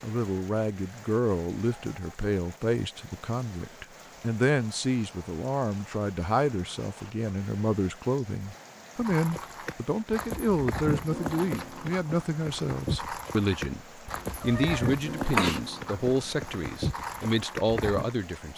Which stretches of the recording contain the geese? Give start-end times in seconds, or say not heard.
not heard.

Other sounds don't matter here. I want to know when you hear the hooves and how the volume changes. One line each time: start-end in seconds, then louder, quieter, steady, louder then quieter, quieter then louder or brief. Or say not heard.
9.0-18.1 steady.